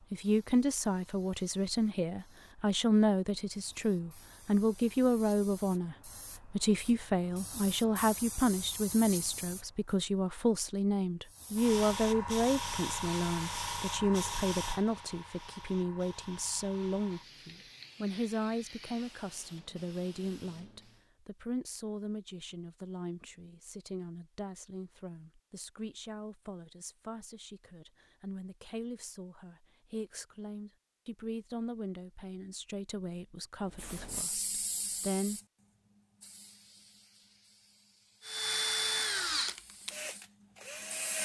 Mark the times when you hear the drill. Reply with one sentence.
You can hear the drill from 38.2 to 41.1 s.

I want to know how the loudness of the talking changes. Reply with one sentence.
The volume of the talking goes down.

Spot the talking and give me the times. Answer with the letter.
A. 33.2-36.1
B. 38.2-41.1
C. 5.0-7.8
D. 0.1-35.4
D.